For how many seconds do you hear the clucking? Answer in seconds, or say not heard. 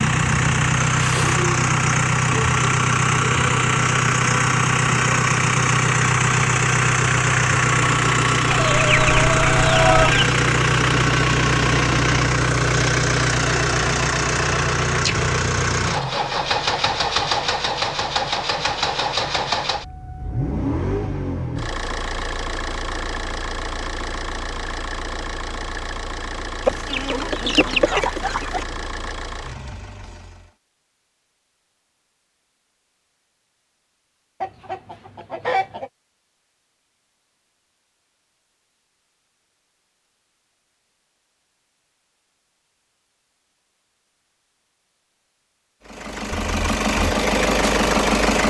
5 s.